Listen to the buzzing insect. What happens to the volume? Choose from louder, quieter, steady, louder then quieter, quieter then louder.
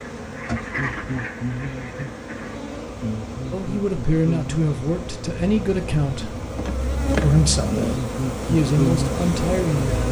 louder.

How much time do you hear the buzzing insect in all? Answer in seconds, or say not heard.
10 s.